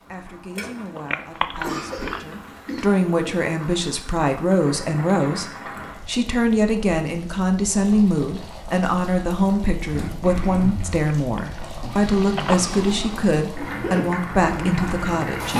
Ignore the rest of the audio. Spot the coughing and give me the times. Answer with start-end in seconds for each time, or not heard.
1.6-3.0, 9.9-11.1.